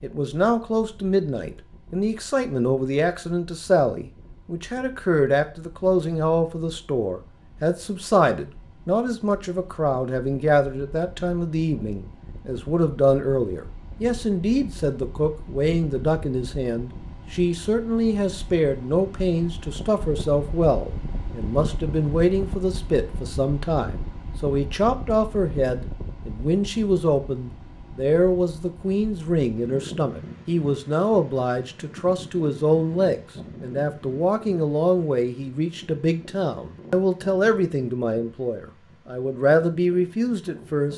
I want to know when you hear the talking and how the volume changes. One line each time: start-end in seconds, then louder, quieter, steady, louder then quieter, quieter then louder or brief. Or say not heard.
0.0-40.9 steady.